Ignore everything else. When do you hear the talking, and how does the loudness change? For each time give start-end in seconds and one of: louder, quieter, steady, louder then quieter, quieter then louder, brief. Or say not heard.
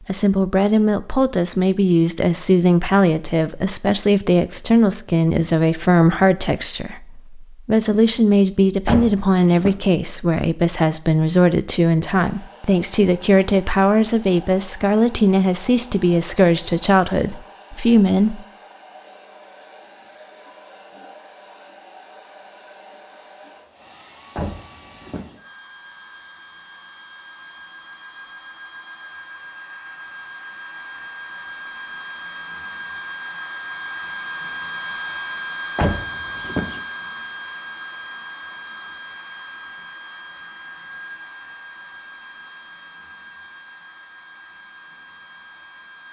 0.1-18.4 steady.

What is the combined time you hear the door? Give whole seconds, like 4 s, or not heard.
3 s.